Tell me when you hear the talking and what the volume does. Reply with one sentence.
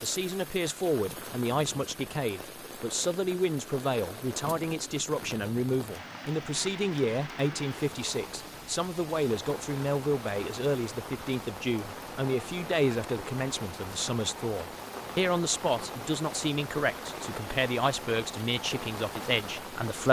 The talking can be heard from 0.0 to 20.0 s, at a steady volume.